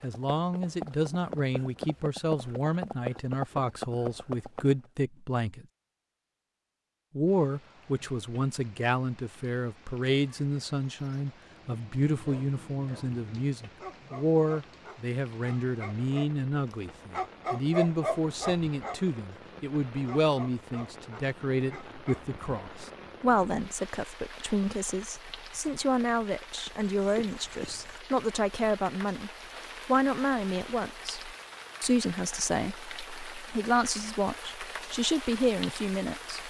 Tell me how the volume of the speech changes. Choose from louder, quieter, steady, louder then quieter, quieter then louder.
steady.